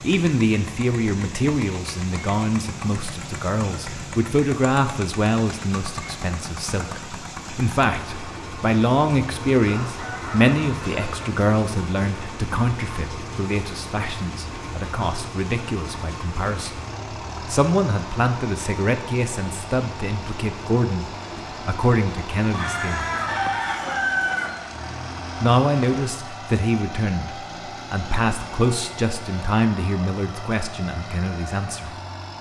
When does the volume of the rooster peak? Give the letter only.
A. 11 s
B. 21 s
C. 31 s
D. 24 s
D.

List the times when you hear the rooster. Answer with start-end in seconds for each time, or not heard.
9.7-11.2, 22.5-24.5.